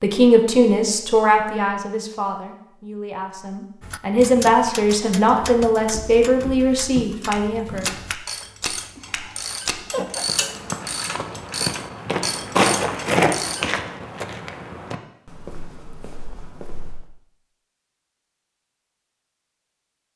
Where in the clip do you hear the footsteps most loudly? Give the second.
13 s.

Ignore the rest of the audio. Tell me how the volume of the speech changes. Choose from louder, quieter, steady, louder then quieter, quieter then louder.
quieter then louder.